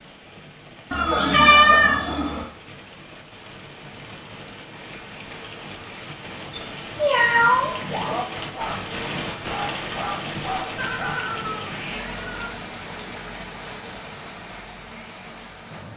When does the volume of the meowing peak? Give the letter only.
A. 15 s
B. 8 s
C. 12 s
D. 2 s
D.